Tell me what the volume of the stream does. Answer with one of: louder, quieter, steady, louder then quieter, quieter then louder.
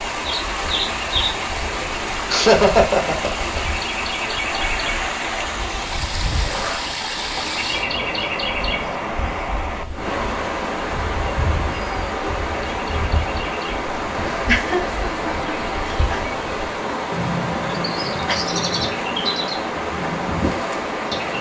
steady.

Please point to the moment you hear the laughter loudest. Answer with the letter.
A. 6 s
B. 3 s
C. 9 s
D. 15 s
B.